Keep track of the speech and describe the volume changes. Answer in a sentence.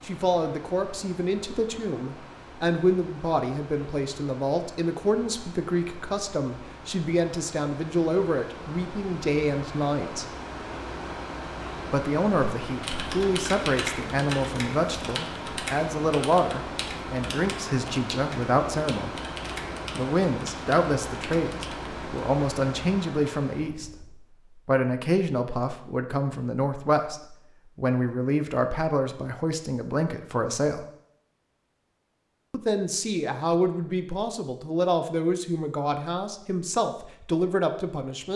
The volume of the speech stays about the same.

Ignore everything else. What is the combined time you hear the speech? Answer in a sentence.
You can hear the speech for 34 seconds altogether.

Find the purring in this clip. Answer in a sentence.
The purring can't be heard in this clip.